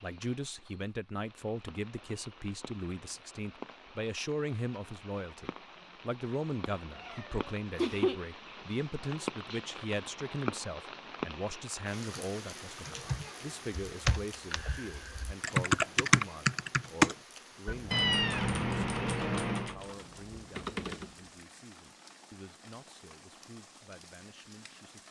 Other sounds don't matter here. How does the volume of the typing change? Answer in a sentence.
The volume of the typing goes up, then down.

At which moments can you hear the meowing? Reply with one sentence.
The meowing can be heard from 7.0 to 8.2 s and from 17.9 to 19.8 s.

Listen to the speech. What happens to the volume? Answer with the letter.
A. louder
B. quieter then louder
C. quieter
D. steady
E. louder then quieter
C.